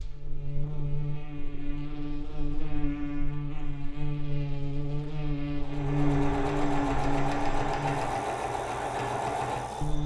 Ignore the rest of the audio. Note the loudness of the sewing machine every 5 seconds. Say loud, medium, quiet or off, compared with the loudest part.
off, loud.